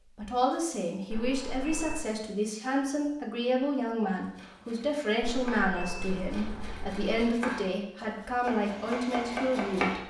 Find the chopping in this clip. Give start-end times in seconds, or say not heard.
4.1-9.9.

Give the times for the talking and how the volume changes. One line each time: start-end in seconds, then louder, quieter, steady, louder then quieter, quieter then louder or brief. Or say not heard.
0.1-10.0 steady.